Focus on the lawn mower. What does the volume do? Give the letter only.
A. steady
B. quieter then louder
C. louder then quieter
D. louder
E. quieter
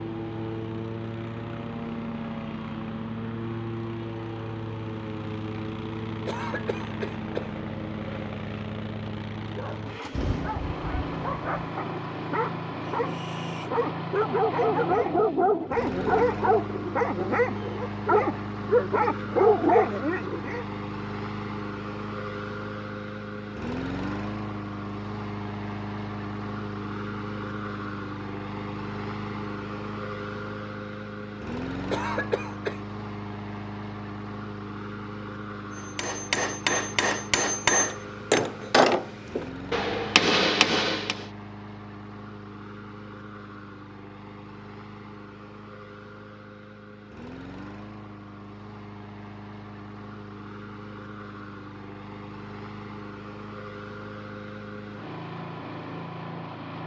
E.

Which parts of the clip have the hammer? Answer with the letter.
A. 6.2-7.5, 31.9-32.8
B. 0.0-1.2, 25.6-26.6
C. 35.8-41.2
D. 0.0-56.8
C.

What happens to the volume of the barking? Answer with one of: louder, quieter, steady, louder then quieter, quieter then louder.
louder.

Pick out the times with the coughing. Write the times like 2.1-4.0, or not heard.
6.2-7.5, 31.9-32.8.